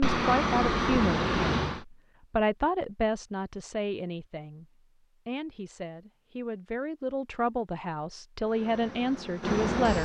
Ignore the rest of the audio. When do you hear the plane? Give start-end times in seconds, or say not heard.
0.0-1.9, 8.4-10.0.